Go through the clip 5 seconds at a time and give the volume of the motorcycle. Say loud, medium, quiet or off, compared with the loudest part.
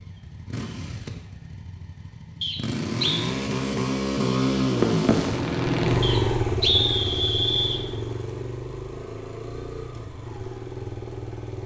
loud, loud, medium.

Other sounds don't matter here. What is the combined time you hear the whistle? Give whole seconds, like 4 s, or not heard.
3 s.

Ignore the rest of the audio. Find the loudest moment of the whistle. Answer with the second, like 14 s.
7 s.